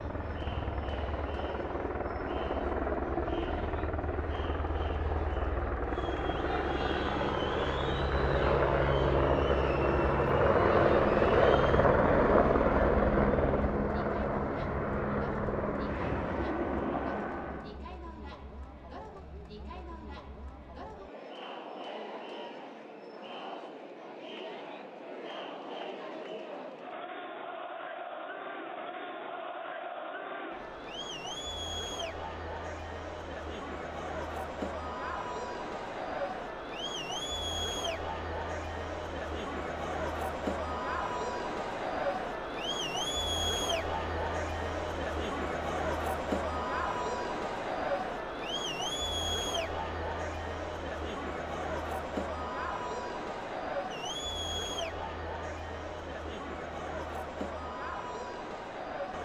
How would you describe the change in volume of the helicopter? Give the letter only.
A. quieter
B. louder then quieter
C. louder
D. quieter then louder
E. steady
B.